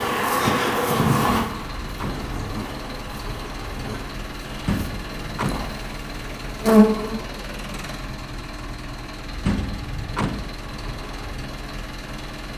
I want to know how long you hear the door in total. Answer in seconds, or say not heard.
3 s.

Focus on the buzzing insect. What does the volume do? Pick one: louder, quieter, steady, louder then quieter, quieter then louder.
quieter then louder.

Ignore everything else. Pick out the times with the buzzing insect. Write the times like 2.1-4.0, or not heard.
0.0-7.2.